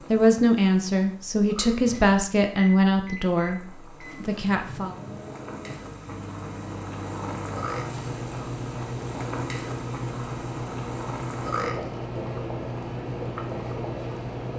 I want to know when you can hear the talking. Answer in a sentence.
The talking can be heard from 0.1 to 5.0 s.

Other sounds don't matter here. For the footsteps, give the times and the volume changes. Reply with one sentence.
The footsteps can't be heard in this clip.